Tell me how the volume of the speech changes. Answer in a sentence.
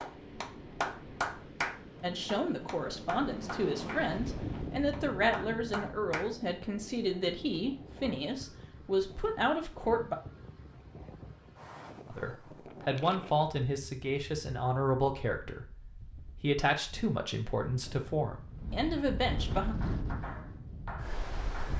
The volume of the speech stays about the same.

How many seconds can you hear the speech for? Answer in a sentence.
You can hear the speech for 16 seconds altogether.